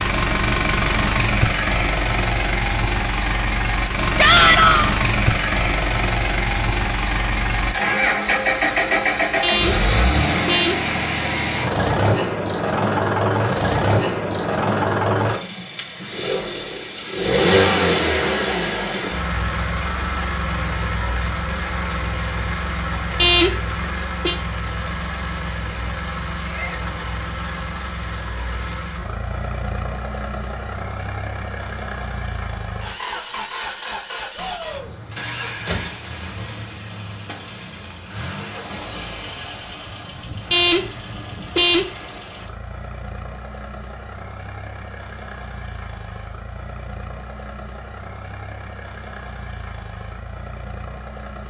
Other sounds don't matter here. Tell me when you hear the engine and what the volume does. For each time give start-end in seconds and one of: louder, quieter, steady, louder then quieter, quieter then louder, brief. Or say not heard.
0.0-51.4 quieter.